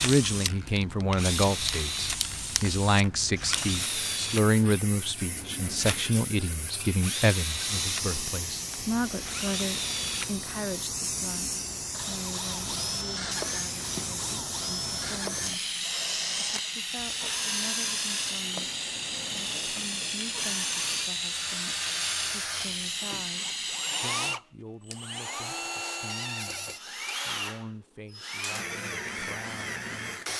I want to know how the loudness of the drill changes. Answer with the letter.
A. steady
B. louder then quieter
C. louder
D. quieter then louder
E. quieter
A.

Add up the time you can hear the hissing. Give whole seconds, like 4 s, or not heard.
24 s.